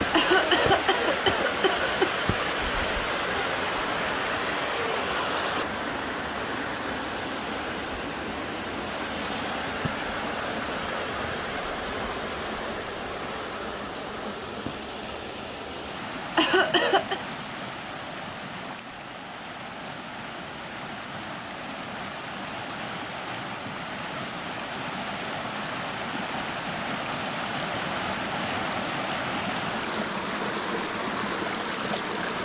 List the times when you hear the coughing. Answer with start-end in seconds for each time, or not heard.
0.1-2.2, 16.4-17.2.